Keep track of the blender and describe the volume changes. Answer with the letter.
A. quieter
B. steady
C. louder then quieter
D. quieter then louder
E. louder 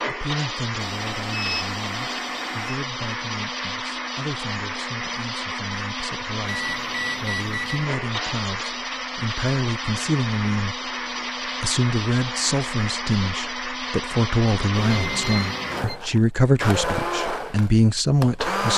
B.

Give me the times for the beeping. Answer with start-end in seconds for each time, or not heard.
0.8-2.8, 6.5-7.8, 14.7-16.0.